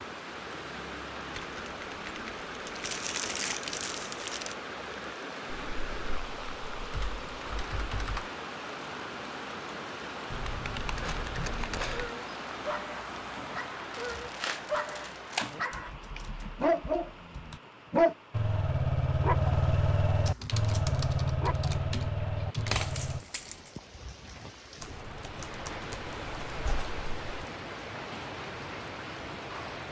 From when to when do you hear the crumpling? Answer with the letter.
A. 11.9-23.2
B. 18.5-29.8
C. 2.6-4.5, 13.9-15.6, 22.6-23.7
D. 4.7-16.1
C.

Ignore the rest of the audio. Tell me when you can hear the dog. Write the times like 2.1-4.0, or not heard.
11.9-23.2.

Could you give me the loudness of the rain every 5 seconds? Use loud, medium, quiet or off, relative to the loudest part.
loud, loud, loud, medium, medium, loud.